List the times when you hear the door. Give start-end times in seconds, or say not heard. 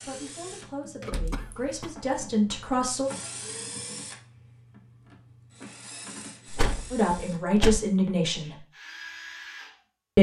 1.0-1.4, 6.5-7.8.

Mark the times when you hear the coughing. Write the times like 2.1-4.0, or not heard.
1.1-2.0.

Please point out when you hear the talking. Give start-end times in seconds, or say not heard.
0.0-3.1, 6.9-8.6.